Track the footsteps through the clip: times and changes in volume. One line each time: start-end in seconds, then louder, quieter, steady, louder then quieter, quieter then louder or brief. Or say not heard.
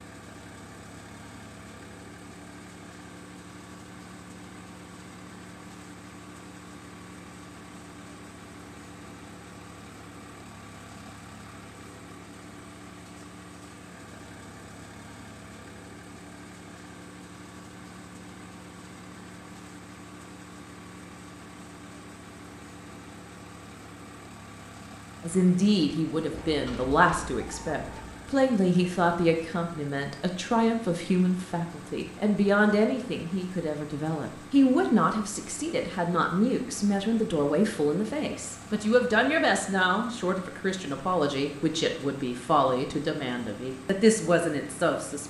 not heard.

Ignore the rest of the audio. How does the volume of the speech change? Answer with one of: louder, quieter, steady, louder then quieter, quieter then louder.
steady.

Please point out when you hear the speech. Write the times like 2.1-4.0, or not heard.
25.2-45.2.